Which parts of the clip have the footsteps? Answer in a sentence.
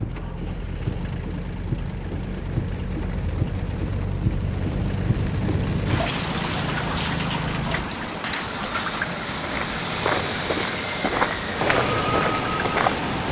The footsteps can be heard from 9.4 to 13.2 s.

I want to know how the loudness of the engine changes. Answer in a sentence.
The volume of the engine goes up.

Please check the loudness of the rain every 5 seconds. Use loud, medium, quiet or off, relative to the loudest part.
loud, loud, medium.